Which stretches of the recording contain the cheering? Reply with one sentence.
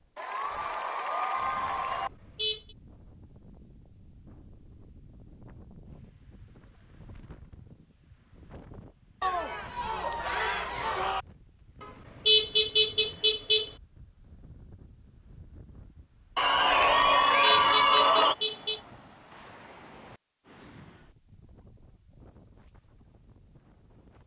You can hear the cheering from 0.1 to 2.1 s, from 9.2 to 11.2 s and from 16.4 to 18.4 s.